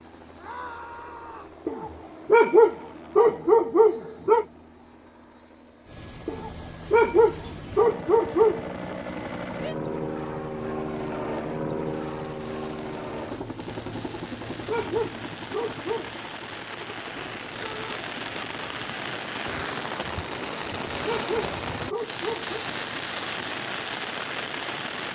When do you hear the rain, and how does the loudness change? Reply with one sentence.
The rain can be heard from 11.8 to 25.0 s, getting louder.